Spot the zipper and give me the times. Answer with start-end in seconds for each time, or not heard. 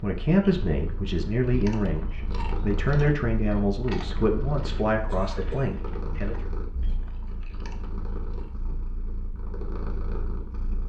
not heard.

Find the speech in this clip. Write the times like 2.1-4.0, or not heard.
0.0-6.3.